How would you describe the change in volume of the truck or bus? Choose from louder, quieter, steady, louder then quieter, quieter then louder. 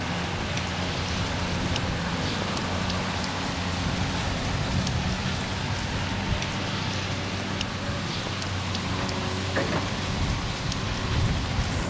steady.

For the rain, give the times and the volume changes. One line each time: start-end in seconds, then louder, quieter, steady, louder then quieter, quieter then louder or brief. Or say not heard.
0.0-11.8 steady.